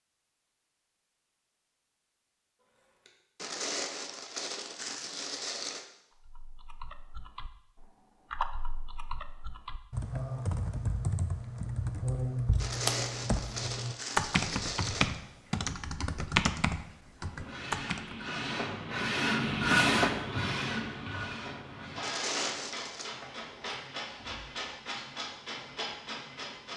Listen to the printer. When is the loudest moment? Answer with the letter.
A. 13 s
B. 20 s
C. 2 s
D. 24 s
B.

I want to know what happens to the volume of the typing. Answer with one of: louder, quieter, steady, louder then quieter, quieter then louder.
louder.